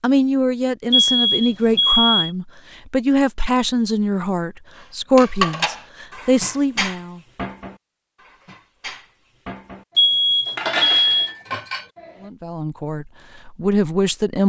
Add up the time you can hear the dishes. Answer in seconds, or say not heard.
6 s.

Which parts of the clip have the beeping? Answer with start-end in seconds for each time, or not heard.
0.9-2.3, 9.9-11.3.